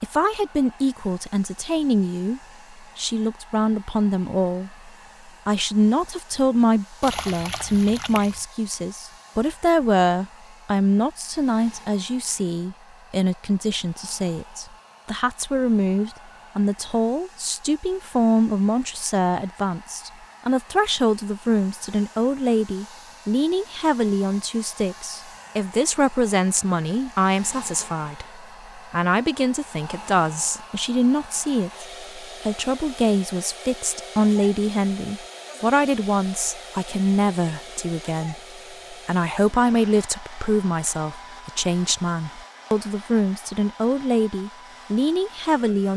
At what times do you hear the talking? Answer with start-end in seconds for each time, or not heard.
0.0-45.9.